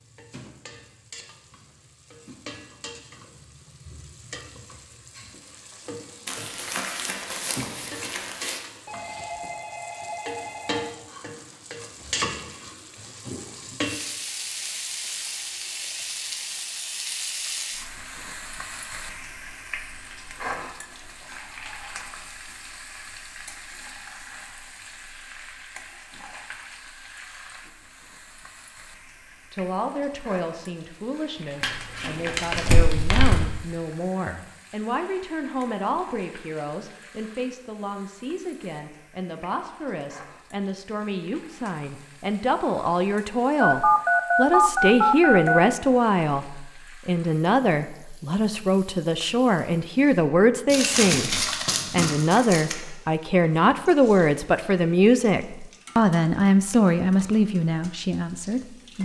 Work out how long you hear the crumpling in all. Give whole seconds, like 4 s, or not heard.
6 s.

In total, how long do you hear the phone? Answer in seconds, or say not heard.
4 s.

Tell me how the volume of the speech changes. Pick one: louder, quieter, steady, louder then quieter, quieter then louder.
louder.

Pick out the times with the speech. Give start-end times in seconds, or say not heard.
29.5-59.0.